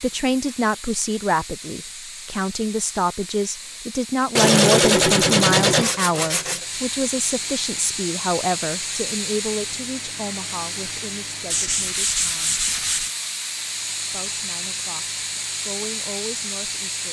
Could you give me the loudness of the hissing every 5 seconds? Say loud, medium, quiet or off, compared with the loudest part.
medium, loud, loud, loud.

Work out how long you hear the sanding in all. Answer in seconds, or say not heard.
4 s.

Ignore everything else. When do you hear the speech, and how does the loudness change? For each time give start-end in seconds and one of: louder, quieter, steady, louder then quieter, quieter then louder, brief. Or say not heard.
0.0-12.6 quieter
14.1-17.0 brief.